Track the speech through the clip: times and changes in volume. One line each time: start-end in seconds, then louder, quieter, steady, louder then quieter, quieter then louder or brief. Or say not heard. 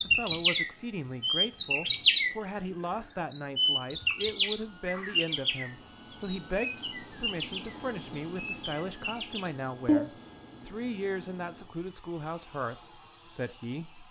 0.1-14.0 steady.